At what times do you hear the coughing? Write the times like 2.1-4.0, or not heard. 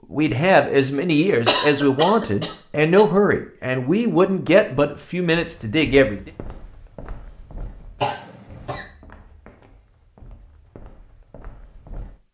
1.4-3.0, 8.0-8.8.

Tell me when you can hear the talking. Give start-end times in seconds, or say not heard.
0.1-6.3.